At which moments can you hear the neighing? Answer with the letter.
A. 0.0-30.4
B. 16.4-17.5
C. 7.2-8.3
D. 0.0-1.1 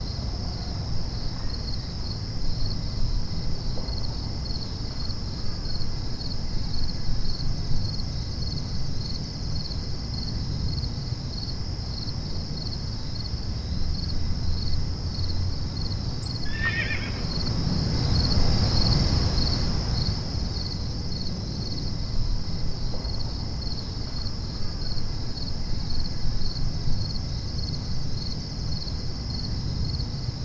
B.